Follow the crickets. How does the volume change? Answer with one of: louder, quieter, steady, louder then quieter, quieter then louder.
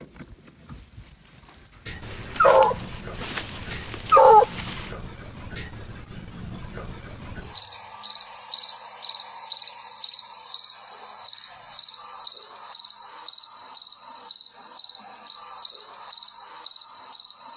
steady.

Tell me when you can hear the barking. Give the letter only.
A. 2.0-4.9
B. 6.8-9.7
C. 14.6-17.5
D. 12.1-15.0
A.